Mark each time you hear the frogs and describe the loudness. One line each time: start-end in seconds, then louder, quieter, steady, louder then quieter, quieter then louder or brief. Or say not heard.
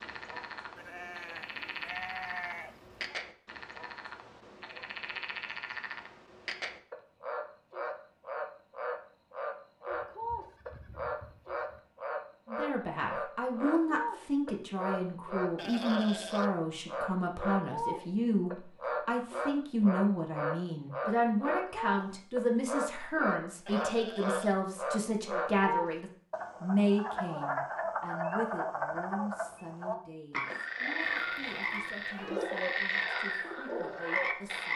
0.0-34.7 louder.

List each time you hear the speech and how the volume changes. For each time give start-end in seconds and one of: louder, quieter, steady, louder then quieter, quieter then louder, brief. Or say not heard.
12.4-34.7 quieter.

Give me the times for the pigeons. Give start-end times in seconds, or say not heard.
31.9-34.6.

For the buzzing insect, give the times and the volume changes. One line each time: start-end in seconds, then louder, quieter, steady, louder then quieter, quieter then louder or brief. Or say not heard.
not heard.